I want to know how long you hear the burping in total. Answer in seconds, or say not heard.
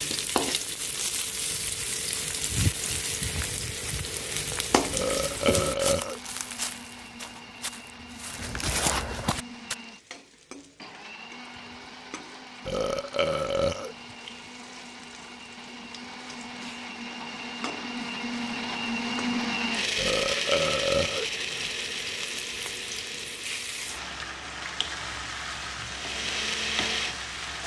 4 s.